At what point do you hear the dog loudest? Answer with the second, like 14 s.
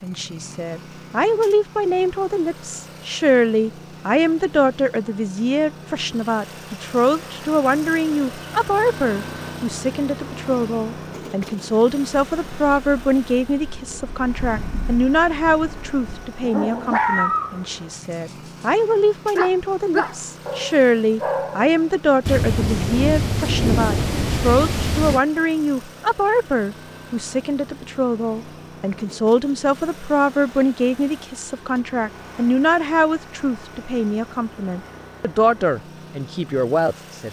17 s.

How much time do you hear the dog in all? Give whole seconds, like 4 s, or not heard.
6 s.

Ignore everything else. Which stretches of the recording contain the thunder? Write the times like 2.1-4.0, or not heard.
12.3-16.4, 22.2-25.2.